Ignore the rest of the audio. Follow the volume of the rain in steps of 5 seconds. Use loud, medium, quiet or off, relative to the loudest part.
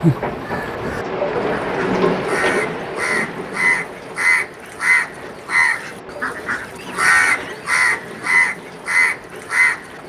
loud, quiet.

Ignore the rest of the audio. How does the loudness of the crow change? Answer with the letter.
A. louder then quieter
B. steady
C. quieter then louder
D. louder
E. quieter
D.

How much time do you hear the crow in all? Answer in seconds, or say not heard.
10 s.